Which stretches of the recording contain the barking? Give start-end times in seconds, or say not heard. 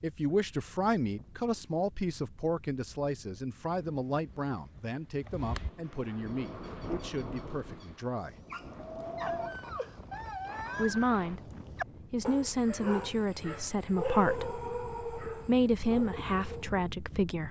6.0-16.8.